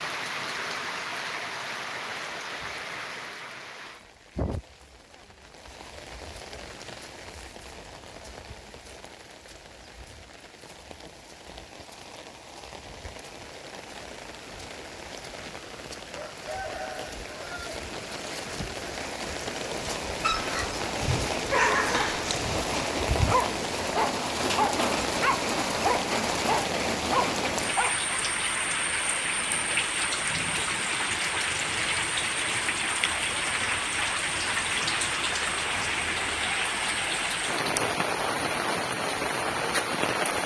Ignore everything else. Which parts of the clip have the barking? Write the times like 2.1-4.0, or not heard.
19.8-28.2.